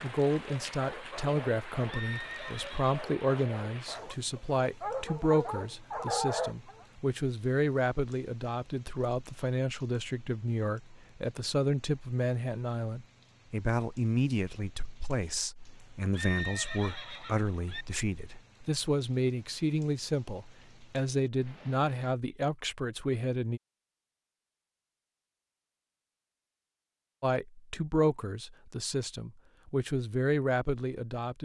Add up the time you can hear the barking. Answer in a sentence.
The barking can be heard for 7 seconds in total.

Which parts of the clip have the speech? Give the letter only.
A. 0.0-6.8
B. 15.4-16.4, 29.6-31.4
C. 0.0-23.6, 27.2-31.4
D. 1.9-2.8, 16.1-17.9
C.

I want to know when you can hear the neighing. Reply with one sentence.
You can hear the neighing from 1.9 to 2.8 s and from 16.1 to 17.9 s.